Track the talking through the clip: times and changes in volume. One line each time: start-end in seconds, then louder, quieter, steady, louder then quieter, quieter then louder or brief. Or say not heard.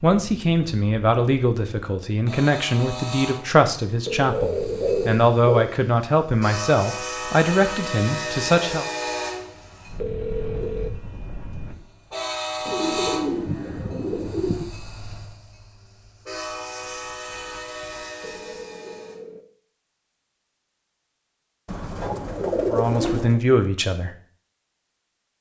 0.0-8.8 steady
22.6-24.1 brief.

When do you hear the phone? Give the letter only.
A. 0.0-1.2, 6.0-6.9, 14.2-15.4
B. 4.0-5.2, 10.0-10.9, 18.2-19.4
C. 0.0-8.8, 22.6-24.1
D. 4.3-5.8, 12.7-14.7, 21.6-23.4
B.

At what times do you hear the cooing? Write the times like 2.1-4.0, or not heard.
4.3-5.8, 12.7-14.7, 21.6-23.4.